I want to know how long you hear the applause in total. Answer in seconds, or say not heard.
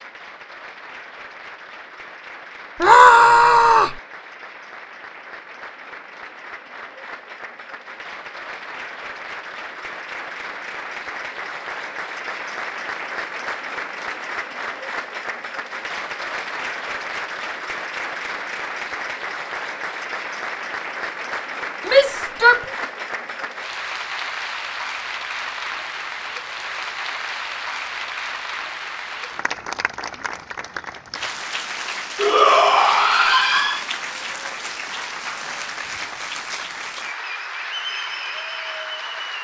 39 s.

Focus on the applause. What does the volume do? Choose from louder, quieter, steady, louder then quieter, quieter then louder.
louder.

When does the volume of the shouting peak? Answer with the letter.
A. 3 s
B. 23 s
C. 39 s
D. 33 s
A.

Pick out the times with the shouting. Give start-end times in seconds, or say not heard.
2.8-4.0, 21.9-22.6, 32.1-33.8.